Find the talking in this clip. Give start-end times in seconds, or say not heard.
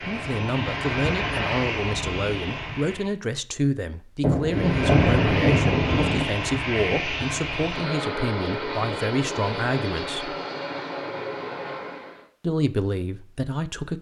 0.1-10.3, 12.4-13.9.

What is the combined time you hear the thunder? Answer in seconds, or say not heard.
2 s.